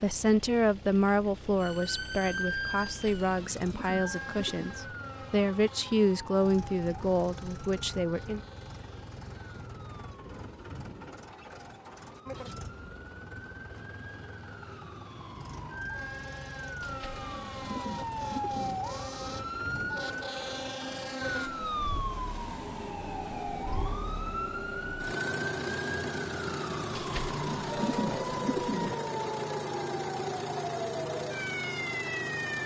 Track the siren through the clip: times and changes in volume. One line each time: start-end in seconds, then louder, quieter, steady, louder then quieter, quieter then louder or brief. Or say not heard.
1.6-32.6 quieter then louder.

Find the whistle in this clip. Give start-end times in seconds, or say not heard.
not heard.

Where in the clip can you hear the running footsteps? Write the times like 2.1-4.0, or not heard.
not heard.